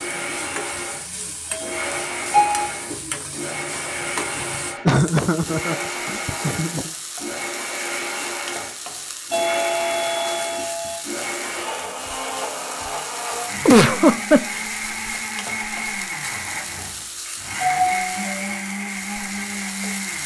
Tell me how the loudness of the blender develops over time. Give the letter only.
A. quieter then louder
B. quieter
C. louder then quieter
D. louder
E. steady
E.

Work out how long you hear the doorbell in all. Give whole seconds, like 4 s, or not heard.
4 s.